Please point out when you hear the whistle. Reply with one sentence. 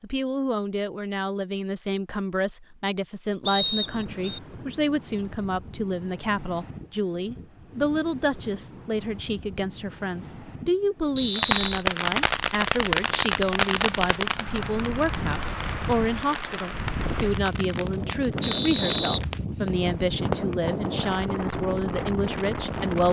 The whistle can be heard from 3.5 to 4.4 s, from 11.2 to 11.8 s and from 18.4 to 19.9 s.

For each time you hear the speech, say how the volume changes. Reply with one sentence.
The speech can be heard from 0.0 to 23.0 s, at a steady volume.